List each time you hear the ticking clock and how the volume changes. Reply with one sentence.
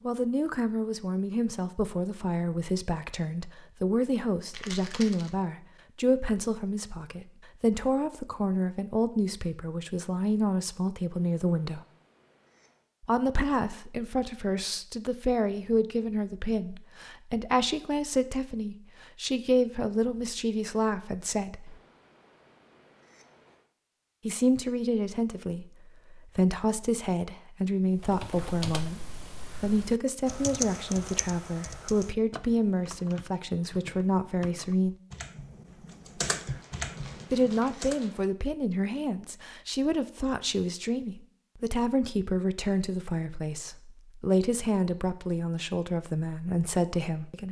The ticking clock can't be heard in this clip.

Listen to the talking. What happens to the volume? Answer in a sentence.
The volume of the talking stays about the same.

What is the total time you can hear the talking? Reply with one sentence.
The talking can be heard for 41 seconds in total.